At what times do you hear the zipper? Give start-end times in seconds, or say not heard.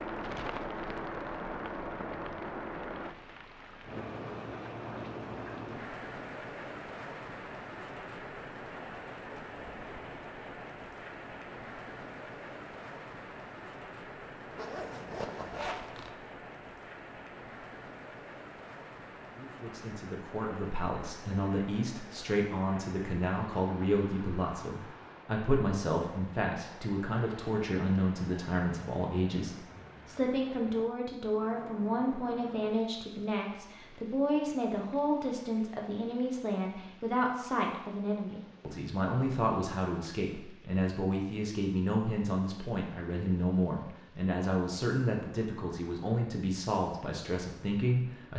14.5-16.2.